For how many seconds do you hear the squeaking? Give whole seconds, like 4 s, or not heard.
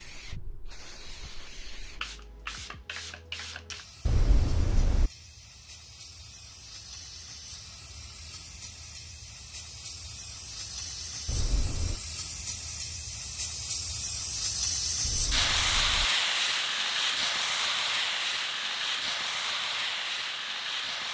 3 s.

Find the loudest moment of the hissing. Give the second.
16 s.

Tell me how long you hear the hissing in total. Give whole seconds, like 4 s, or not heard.
21 s.